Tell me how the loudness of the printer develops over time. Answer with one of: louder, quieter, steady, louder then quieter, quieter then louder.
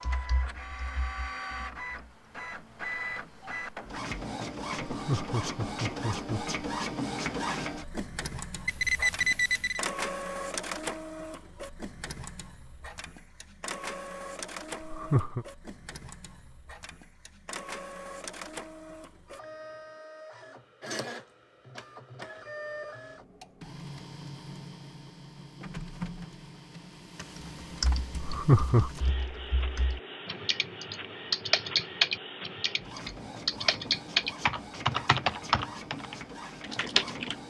quieter.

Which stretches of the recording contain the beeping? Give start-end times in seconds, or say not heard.
8.7-9.8.